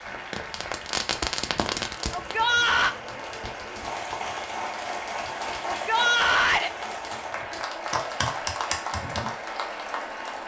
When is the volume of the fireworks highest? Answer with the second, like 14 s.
1 s.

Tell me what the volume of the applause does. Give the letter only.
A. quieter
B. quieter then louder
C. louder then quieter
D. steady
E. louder
E.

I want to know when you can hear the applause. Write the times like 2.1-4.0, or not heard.
0.0-10.4.